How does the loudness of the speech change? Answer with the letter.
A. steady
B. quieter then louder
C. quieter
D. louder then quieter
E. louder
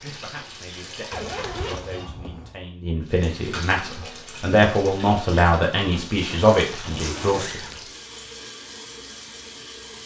E.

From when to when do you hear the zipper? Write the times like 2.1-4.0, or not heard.
1.1-2.6, 6.8-7.8.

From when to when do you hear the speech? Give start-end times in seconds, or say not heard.
0.0-7.6.